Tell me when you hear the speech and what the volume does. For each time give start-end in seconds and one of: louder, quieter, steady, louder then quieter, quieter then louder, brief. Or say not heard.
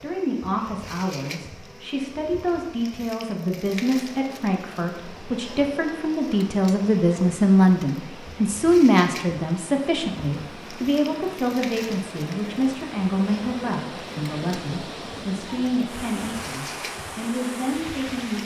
0.0-18.4 louder then quieter.